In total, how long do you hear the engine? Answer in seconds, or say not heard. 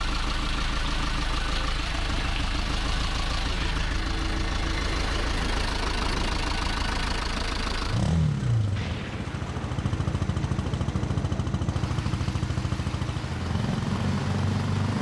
15 s.